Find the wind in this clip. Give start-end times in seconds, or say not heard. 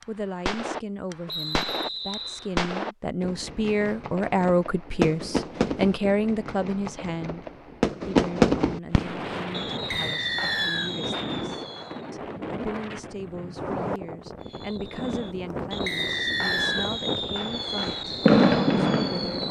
8.9-19.4.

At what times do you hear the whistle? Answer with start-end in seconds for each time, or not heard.
1.2-2.5, 9.9-10.9, 15.8-16.9.